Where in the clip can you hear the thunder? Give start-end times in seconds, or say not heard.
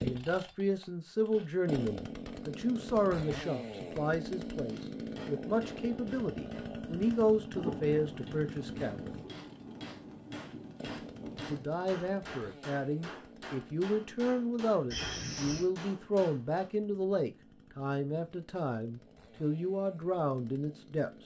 7.5-11.7.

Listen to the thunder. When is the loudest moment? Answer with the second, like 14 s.
8 s.